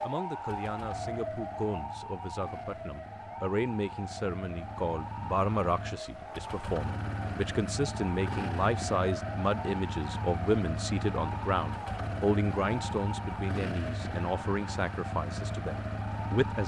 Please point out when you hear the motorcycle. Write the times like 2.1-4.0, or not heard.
0.0-16.6.